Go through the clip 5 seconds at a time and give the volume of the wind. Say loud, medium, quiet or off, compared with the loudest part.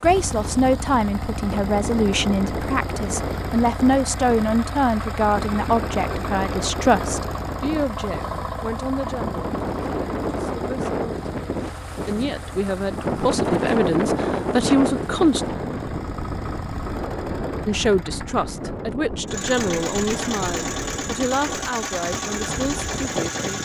medium, medium, loud, medium, medium.